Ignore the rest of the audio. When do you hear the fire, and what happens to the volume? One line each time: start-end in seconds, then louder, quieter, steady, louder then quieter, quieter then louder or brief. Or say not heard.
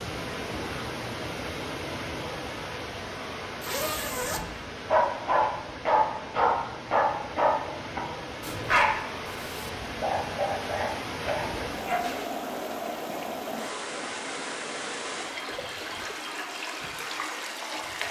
not heard.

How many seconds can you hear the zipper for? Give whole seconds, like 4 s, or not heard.
2 s.